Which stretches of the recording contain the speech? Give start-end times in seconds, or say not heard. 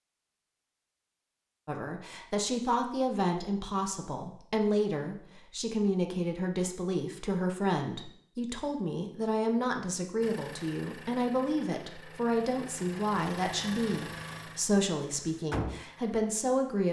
1.6-16.8.